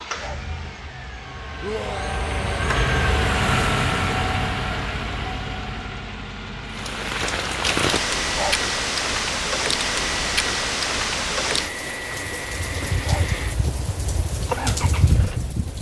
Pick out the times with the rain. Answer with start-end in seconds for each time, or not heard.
6.7-15.7.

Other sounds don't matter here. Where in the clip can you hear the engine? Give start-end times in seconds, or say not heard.
0.0-15.6.